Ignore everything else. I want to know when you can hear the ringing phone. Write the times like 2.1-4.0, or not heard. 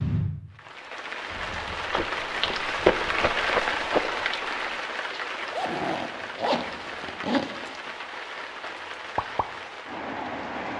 not heard.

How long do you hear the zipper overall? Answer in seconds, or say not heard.
4 s.